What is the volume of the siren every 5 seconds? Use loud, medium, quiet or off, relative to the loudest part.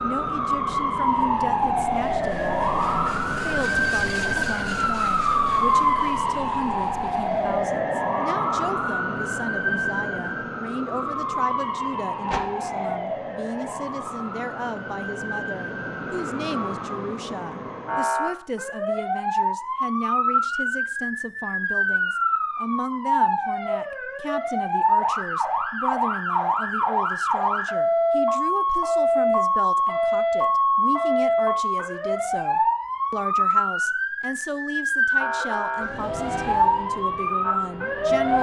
loud, loud, medium, medium, loud, loud, loud, loud.